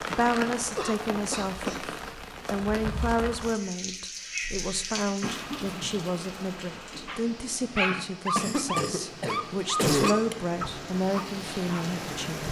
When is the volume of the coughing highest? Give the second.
10 s.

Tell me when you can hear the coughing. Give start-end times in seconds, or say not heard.
0.8-1.8, 4.4-6.0, 8.3-10.3.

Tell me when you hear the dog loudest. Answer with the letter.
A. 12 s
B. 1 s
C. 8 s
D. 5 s
C.